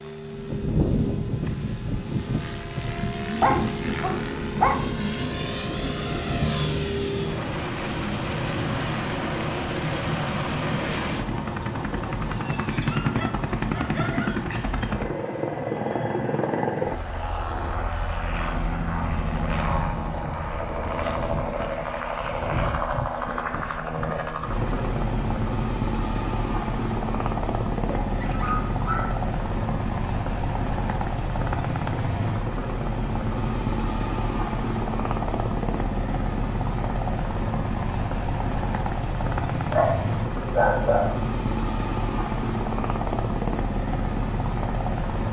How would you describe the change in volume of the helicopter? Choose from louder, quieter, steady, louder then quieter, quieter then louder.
steady.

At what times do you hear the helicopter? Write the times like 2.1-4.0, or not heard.
0.0-45.2.